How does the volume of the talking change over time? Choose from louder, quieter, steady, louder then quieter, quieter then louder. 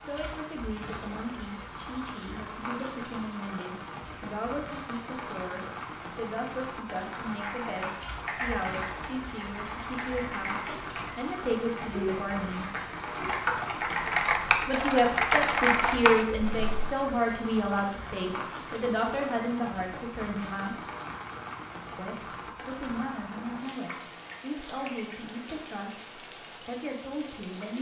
louder then quieter.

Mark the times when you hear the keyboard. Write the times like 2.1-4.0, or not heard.
7.4-16.8.